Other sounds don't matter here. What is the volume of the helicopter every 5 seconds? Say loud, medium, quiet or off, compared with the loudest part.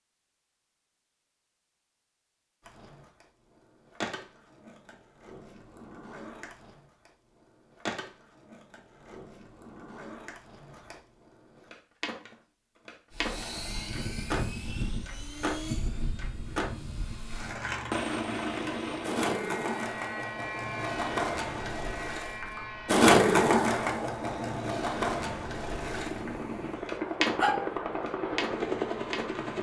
off, off, loud, loud, medium, loud.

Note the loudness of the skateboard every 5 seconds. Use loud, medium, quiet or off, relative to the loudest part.
quiet, quiet, quiet, medium, loud, medium.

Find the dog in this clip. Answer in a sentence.
The dog can be heard from 26.1 to 27.7 s.